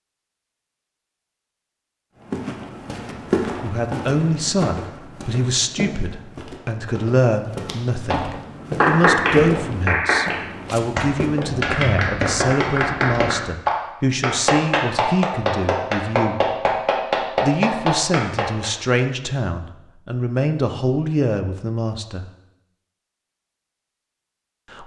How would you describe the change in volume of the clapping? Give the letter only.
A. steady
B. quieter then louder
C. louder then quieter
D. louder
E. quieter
A.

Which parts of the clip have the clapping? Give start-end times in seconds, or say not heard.
8.1-18.7.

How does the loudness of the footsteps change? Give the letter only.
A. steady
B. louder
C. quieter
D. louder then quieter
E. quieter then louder
E.